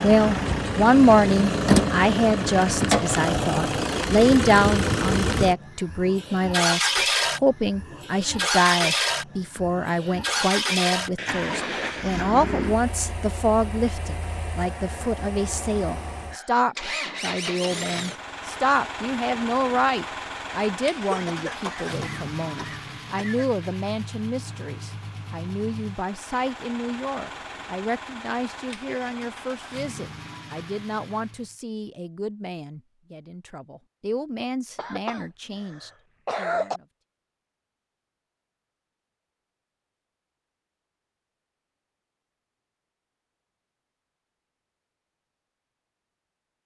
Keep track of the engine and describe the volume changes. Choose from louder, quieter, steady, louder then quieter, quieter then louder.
quieter.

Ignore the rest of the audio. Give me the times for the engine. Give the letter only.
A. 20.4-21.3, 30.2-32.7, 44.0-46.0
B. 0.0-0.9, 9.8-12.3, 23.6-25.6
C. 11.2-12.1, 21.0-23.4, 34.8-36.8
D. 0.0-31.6
D.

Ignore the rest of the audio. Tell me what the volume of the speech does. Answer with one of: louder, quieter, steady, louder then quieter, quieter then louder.
quieter.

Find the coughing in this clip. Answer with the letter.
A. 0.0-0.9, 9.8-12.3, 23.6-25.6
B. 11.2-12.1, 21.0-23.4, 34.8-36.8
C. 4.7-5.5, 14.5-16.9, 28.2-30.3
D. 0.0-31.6
B.